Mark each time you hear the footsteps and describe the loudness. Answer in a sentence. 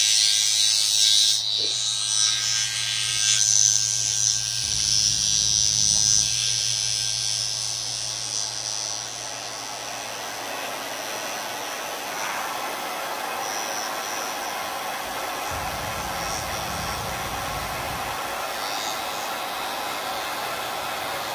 You can't hear the footsteps here.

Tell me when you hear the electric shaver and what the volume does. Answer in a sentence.
The electric shaver can be heard from 0.0 to 21.3 s, getting quieter.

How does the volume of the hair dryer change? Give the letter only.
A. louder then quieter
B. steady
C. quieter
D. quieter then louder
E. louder
E.